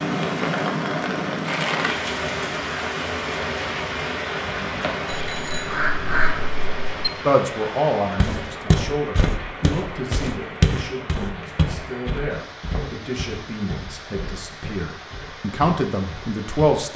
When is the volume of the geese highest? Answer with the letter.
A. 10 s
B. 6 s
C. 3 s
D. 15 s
B.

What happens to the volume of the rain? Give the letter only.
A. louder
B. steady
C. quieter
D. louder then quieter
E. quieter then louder
C.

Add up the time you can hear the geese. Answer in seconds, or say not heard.
2 s.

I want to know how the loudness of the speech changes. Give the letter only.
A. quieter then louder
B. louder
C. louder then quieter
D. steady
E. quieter
A.